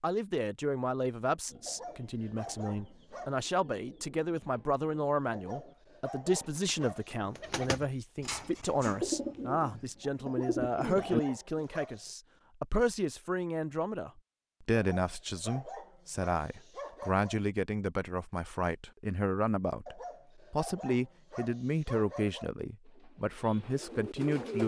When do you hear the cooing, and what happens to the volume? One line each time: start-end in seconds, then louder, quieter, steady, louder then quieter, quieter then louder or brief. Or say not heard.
1.4-11.7 louder
22.9-24.6 brief.